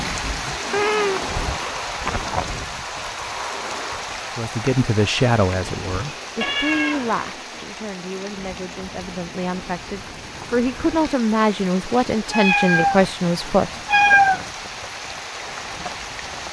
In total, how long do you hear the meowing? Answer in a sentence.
The meowing can be heard for 4 seconds in total.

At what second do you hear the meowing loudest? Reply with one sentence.
The volume of the meowing peaks at 14 seconds.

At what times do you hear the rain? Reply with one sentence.
You can hear the rain from 0.0 to 16.4 s.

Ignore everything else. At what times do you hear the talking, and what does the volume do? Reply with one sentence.
The talking can be heard from 4.3 to 14.2 s, getting quieter then louder.